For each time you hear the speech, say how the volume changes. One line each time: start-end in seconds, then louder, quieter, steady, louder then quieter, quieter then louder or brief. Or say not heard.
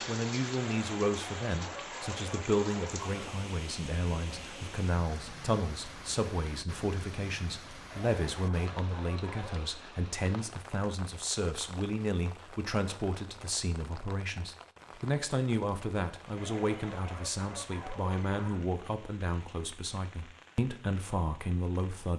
0.1-22.1 steady.